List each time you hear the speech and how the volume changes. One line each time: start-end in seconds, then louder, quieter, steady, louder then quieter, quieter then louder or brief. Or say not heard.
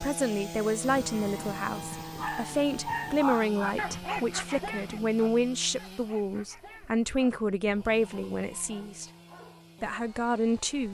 0.0-9.1 steady
9.8-10.8 brief.